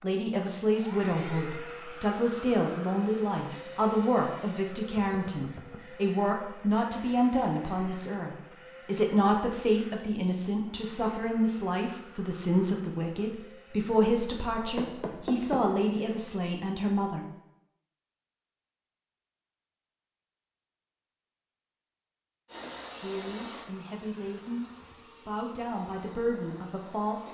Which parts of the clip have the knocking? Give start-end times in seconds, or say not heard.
14.8-15.6.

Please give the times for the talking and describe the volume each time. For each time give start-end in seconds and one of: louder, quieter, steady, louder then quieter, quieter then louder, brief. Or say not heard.
0.0-17.2 steady
23.0-27.2 louder.